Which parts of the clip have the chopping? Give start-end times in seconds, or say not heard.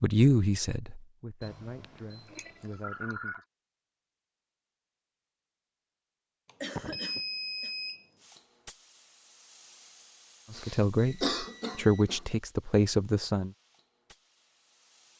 not heard.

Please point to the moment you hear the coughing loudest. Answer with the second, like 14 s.
11 s.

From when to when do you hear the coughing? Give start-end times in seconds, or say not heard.
2.2-3.5, 6.6-7.7, 10.5-12.2.